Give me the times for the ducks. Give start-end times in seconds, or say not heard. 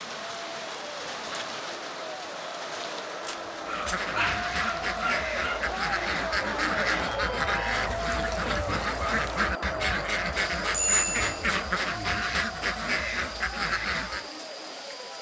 3.6-14.3.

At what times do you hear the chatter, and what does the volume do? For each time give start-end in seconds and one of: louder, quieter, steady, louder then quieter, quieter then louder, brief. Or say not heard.
0.1-15.1 louder then quieter.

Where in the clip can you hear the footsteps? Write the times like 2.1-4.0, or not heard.
not heard.